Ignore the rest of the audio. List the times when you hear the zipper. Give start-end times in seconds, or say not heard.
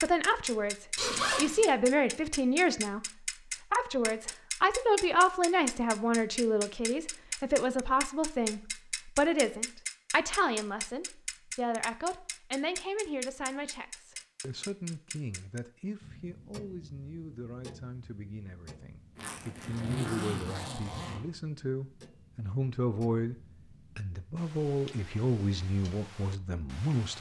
0.9-1.6, 19.1-21.2.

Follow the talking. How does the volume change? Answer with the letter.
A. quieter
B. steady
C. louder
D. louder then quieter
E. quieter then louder
E.